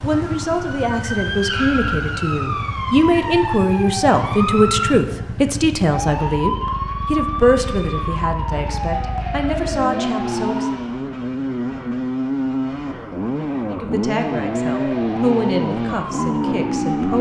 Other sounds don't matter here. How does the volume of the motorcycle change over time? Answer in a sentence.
The volume of the motorcycle goes up.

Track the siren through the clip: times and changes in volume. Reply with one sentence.
The siren can be heard from 0.0 to 10.9 s, at a steady volume; and briefly from 14.2 to 17.1 s.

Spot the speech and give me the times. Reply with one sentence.
The speech can be heard from 0.0 to 10.8 s and from 13.7 to 17.1 s.